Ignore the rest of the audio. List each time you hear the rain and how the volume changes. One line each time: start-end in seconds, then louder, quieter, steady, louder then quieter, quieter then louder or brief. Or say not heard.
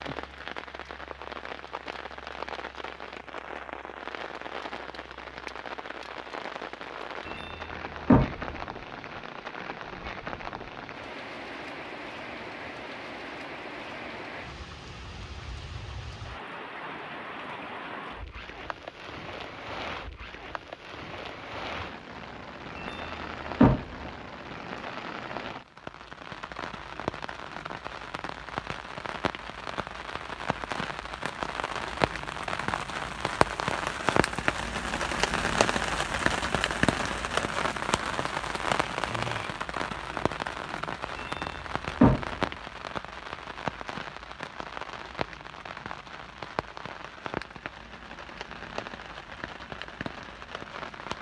0.0-51.1 louder then quieter.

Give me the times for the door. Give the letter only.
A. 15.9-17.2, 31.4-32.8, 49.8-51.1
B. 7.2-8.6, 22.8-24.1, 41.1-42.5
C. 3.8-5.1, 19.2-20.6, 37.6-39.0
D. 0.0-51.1
B.